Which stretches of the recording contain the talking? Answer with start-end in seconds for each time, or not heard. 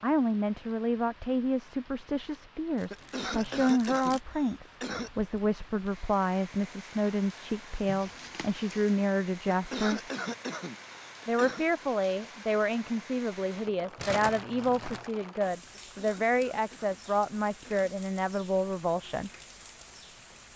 0.0-10.0, 11.2-19.3.